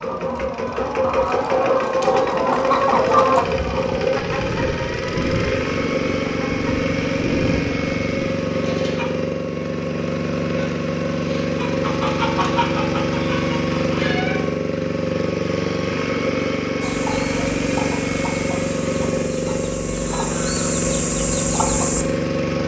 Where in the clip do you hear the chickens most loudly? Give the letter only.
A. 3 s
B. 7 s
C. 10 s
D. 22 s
A.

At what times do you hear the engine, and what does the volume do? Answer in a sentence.
The engine can be heard from 0.0 to 22.6 s, at a steady volume.